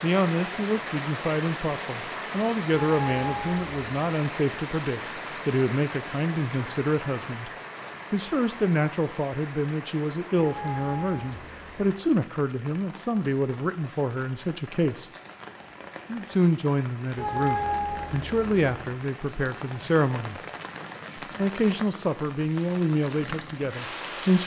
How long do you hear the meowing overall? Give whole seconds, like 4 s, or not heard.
4 s.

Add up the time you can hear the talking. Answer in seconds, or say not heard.
22 s.